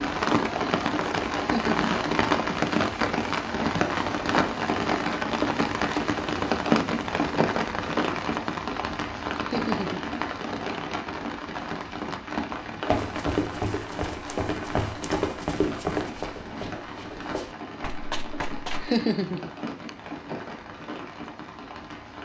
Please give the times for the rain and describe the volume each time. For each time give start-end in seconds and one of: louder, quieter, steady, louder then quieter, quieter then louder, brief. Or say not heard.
0.0-22.2 quieter.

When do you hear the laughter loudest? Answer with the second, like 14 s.
19 s.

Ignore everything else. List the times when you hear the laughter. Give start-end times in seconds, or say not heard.
1.4-1.9, 9.4-10.1, 18.8-19.9.